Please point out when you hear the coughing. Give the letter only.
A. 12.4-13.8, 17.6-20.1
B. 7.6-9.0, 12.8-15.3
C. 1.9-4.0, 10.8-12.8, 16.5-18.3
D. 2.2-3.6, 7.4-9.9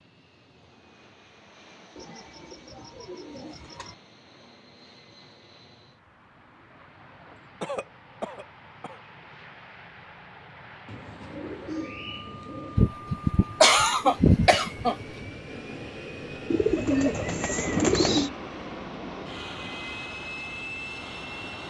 B.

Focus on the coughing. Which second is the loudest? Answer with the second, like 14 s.
14 s.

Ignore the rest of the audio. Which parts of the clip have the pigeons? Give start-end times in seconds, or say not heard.
1.9-4.0, 10.8-12.8, 16.5-18.3.